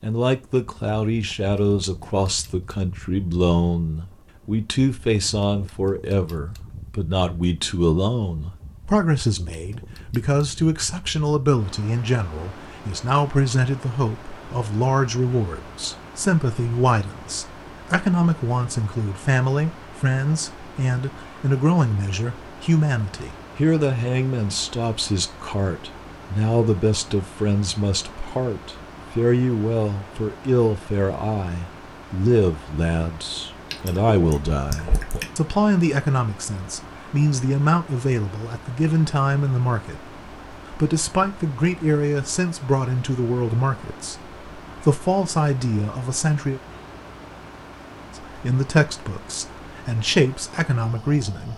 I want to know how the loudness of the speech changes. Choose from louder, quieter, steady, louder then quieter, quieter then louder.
steady.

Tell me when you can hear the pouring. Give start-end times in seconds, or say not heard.
33.7-35.2.